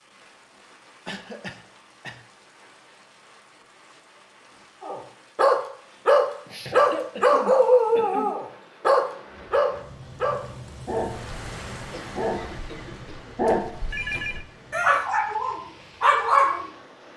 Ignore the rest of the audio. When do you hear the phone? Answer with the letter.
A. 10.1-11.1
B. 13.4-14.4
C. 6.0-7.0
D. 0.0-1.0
B.